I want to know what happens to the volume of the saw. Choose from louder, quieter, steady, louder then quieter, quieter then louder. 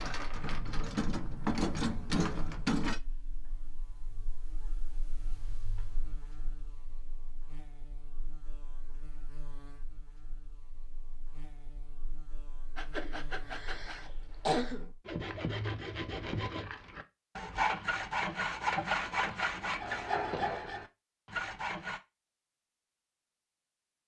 louder.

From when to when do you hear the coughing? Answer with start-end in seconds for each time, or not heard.
12.9-14.9.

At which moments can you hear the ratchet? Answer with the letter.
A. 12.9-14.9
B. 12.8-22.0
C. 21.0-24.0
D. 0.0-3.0
D.